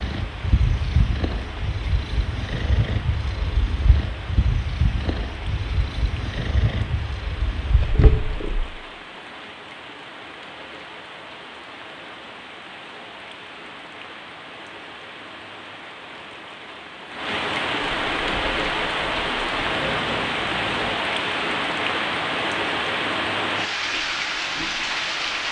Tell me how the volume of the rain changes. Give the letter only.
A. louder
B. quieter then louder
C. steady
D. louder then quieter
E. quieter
A.